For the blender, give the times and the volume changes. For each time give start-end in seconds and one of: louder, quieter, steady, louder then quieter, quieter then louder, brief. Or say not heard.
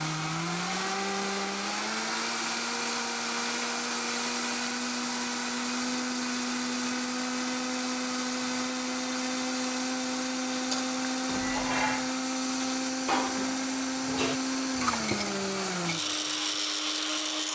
0.0-17.4 steady.